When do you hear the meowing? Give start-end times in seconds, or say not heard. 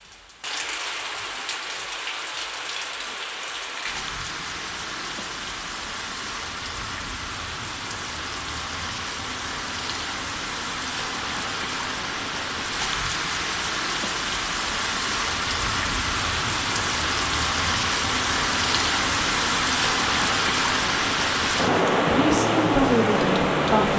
not heard.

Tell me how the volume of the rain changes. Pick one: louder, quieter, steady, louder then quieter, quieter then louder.
louder.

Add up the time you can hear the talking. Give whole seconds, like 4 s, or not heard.
2 s.